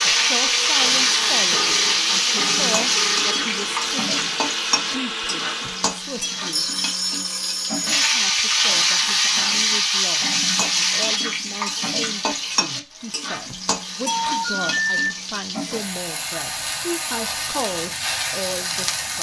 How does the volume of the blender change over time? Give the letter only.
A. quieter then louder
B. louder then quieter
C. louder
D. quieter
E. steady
E.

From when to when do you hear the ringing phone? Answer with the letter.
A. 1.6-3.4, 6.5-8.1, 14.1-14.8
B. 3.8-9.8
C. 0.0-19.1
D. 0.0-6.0
A.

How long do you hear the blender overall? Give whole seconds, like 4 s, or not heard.
6 s.